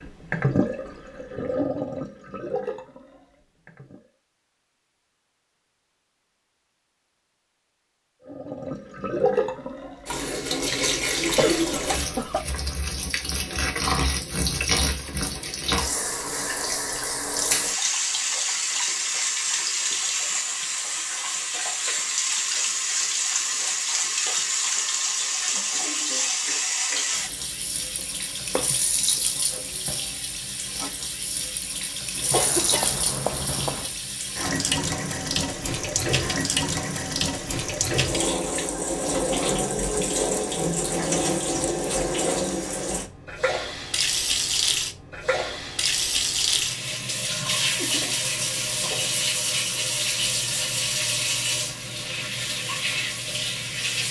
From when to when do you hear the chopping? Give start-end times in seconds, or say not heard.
27.9-29.6.